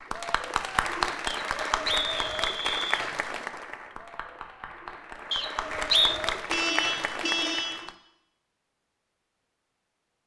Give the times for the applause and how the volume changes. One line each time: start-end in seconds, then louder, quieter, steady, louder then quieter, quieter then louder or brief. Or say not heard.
0.0-7.9 quieter then louder.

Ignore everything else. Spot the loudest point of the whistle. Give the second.
6 s.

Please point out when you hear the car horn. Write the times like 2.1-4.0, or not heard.
6.1-7.9.